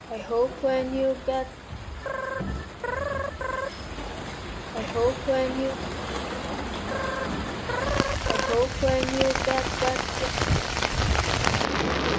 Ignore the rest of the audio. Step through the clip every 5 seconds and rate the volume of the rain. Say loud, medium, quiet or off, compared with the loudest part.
quiet, medium, loud.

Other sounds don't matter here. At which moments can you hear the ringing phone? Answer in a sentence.
You can hear the ringing phone from 2.0 to 3.7 s and from 6.8 to 8.6 s.